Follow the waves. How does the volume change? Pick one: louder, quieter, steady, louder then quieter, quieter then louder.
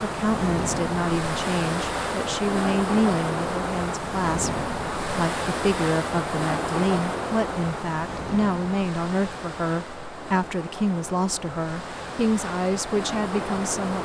quieter.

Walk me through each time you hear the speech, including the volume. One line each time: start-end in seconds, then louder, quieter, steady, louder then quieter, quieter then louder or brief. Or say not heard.
0.0-13.9 steady.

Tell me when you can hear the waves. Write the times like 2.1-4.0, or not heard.
0.0-13.9.